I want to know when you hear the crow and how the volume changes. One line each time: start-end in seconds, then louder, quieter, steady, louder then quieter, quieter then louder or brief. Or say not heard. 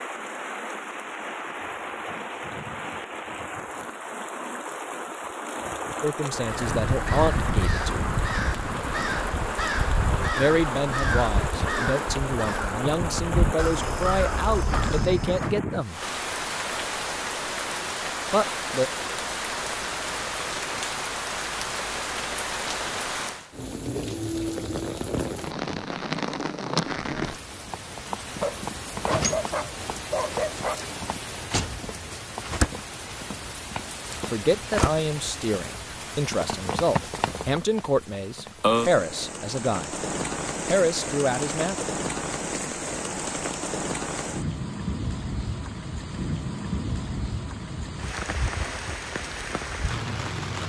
6.3-15.6 steady.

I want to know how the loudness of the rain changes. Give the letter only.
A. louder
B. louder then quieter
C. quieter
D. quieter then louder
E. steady
E.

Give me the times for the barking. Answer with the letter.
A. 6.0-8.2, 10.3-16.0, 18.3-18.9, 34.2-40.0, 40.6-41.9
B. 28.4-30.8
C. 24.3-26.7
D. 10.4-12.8
B.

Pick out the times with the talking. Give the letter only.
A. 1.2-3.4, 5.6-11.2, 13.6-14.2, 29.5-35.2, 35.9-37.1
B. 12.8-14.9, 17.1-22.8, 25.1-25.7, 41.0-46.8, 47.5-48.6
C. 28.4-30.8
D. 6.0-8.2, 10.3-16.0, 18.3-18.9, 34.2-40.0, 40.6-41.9
D.